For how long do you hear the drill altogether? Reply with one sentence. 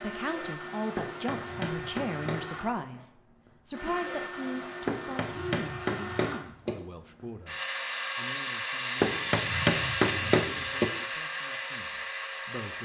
The drill can be heard for 13 seconds in total.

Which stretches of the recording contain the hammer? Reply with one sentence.
The hammer can be heard from 0.9 to 2.8 s, from 4.8 to 6.8 s and from 9.0 to 10.9 s.